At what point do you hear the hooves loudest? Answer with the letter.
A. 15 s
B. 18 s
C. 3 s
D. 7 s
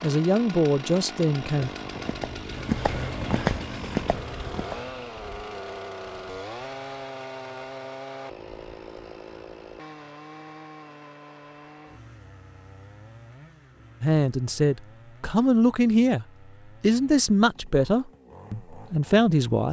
C.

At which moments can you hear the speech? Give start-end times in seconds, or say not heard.
0.0-1.7, 14.0-19.6.